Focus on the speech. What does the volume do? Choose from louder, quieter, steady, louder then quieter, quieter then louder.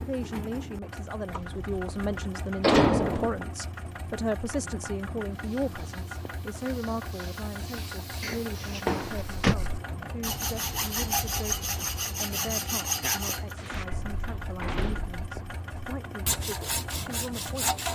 quieter.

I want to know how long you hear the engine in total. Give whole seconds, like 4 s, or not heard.
18 s.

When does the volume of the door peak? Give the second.
3 s.